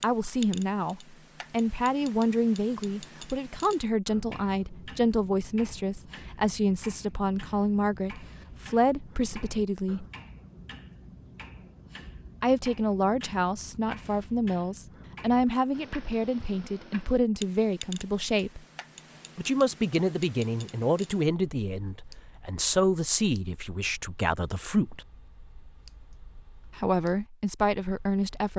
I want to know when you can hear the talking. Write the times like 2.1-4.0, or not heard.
0.0-10.1, 12.4-18.6, 19.4-25.1, 26.8-28.5.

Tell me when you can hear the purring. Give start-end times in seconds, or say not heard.
not heard.